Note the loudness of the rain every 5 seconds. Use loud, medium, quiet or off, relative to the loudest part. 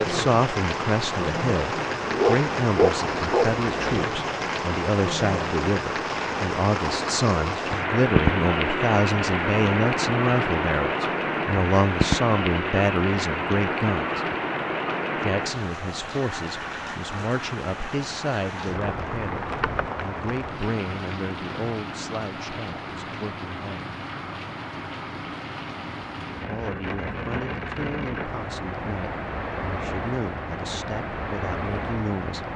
loud, loud, loud, medium, medium, medium, medium.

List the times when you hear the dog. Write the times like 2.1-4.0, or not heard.
2.0-4.0.